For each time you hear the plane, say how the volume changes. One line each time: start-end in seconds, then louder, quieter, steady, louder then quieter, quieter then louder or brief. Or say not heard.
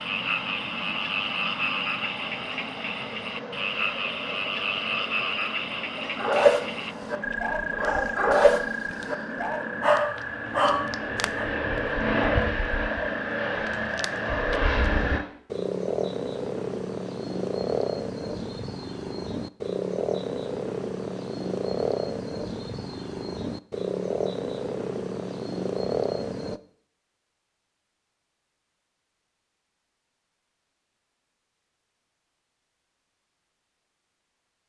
0.0-15.2 louder.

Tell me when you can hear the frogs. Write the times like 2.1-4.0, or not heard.
0.0-26.6.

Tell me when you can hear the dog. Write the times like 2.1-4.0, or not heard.
6.0-11.5.